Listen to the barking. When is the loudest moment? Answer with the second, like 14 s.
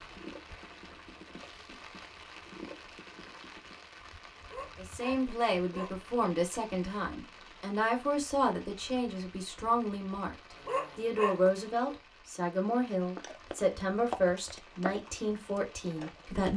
11 s.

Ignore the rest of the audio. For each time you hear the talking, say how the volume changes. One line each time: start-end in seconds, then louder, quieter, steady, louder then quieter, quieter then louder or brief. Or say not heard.
4.8-10.3 steady
10.9-16.5 quieter.